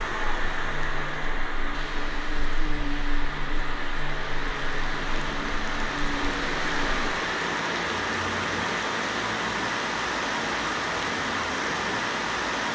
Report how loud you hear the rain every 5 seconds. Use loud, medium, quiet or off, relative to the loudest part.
medium, loud, loud.